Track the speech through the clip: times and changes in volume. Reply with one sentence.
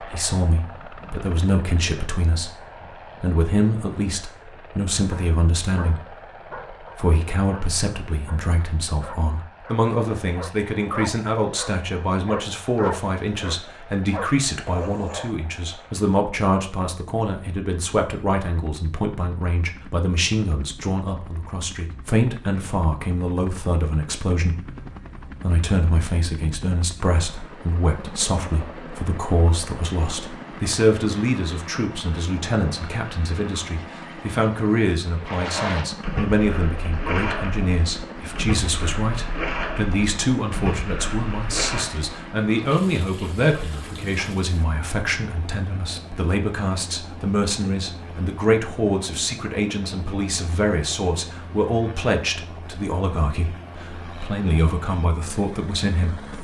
You can hear the speech briefly from 0.0 to 2.5 s; briefly from 3.2 to 6.1 s; and from 6.8 to 56.3 s, at a steady volume.